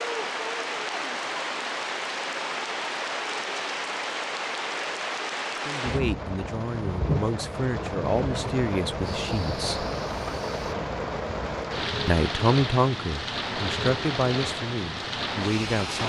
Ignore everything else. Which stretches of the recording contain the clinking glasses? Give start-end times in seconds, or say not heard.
not heard.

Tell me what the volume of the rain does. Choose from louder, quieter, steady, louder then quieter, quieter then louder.
steady.